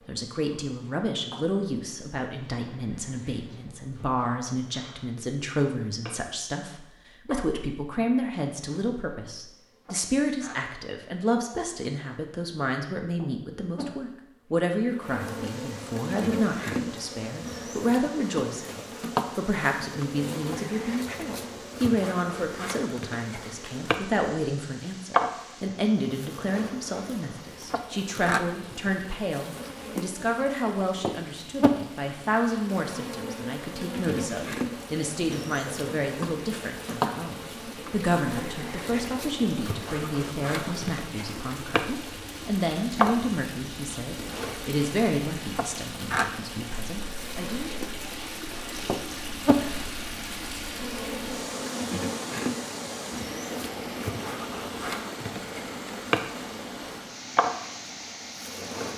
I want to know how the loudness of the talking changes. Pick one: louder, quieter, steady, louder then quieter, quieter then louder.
steady.